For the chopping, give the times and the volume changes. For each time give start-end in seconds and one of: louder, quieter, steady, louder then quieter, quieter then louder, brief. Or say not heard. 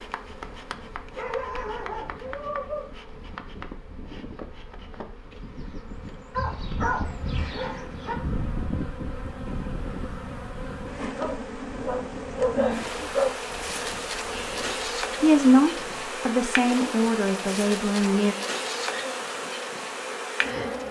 not heard.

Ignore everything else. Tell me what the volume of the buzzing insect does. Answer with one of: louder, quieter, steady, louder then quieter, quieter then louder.
louder.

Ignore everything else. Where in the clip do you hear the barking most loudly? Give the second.
13 s.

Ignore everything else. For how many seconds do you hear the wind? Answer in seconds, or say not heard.
16 s.